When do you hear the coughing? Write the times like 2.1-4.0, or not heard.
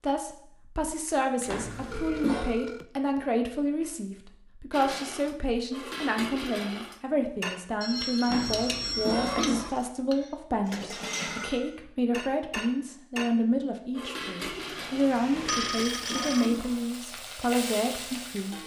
1.4-2.5, 8.2-9.7, 15.3-16.8.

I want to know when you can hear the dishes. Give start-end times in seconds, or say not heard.
4.7-15.8.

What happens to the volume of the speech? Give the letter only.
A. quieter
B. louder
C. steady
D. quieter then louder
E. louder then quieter
C.